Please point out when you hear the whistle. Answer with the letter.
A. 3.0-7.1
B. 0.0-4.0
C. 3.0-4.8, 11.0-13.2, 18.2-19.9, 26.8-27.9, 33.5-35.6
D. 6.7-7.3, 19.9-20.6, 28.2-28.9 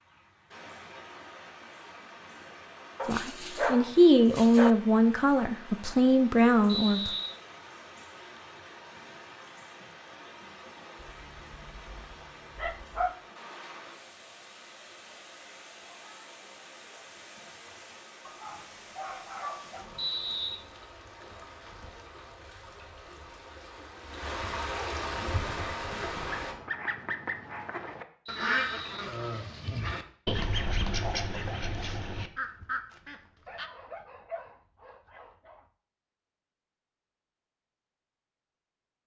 D.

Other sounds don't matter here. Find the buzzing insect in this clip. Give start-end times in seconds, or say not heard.
not heard.